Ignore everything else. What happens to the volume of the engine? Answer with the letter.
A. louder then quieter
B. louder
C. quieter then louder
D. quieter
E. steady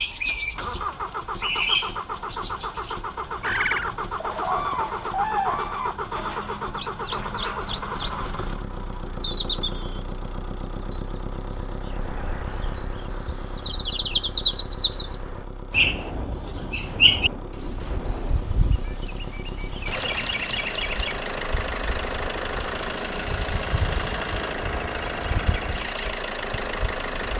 C.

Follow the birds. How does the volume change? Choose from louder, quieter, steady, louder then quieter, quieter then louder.
quieter.